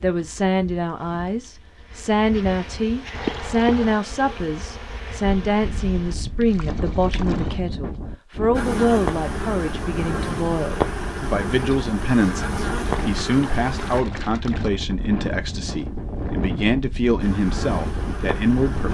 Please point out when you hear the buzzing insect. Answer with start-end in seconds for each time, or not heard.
0.0-6.2, 8.5-14.0, 17.2-18.8.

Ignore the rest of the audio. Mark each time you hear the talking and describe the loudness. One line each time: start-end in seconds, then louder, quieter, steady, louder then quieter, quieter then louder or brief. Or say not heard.
0.0-18.8 steady.